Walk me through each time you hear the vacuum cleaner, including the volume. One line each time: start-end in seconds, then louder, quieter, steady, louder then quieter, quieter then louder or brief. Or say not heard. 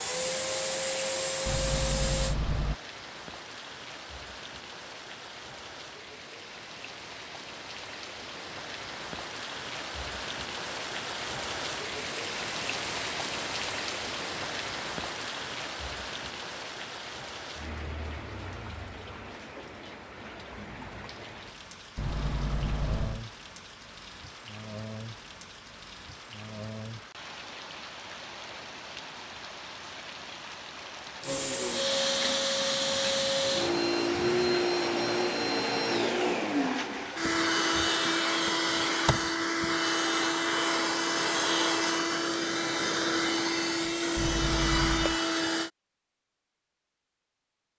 0.0-2.4 brief
31.2-45.7 steady.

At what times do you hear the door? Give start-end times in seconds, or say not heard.
1.4-2.8, 21.9-23.2, 44.1-45.2.